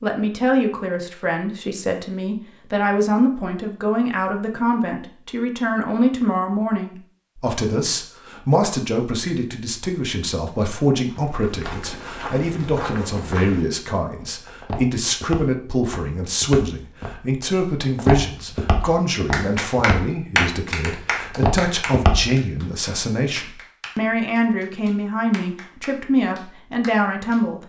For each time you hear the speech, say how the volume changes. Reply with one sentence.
The speech can be heard from 0.0 to 27.6 s, at a steady volume.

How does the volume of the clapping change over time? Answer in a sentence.
The loudness of the clapping goes down.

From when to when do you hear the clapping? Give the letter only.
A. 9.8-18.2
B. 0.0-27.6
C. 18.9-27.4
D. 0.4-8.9
C.